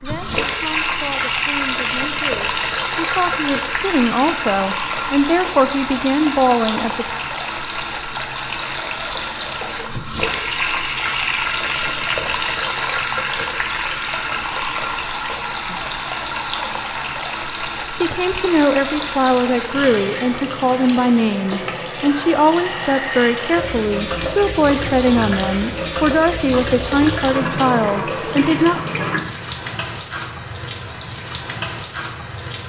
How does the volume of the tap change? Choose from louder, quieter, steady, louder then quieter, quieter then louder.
steady.